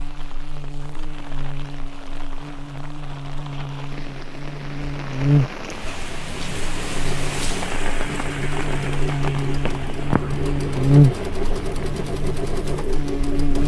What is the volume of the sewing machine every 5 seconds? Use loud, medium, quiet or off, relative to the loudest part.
off, medium, loud.